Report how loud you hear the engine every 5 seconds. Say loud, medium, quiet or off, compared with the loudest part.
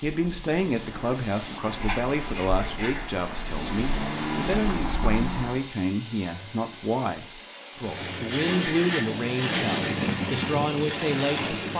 medium, loud, loud.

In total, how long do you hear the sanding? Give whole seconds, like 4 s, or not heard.
3 s.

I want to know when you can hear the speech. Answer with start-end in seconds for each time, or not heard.
0.0-11.7.